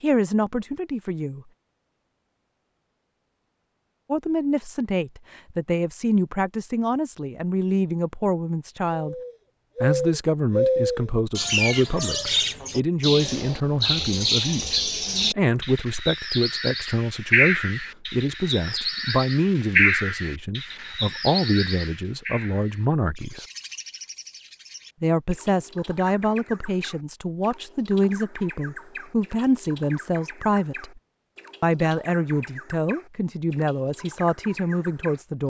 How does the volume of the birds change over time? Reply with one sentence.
The loudness of the birds goes down.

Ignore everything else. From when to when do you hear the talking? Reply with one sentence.
The talking can be heard from 0.0 to 1.4 s, from 4.1 to 9.2 s, from 9.8 to 23.4 s, from 25.0 to 31.0 s and from 31.6 to 35.4 s.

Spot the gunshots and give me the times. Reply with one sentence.
The gunshots can't be heard in this clip.